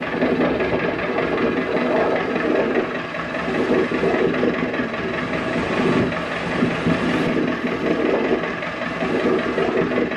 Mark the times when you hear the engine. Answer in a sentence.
The engine can be heard from 0.0 to 10.1 s.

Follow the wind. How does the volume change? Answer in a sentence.
The loudness of the wind stays about the same.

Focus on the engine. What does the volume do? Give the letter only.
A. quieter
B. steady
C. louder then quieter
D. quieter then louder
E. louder
B.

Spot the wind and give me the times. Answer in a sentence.
The wind can be heard from 0.0 to 10.1 s.